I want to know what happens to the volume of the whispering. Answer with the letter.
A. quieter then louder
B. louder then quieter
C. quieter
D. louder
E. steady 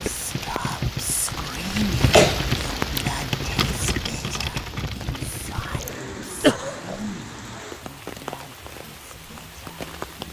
C.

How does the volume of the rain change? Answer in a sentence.
The volume of the rain goes down.